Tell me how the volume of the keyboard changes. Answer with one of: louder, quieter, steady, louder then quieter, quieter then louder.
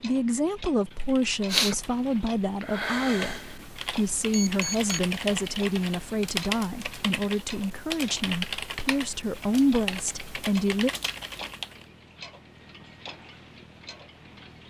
quieter.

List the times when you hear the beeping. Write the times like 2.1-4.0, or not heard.
4.3-5.0.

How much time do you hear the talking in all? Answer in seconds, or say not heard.
11 s.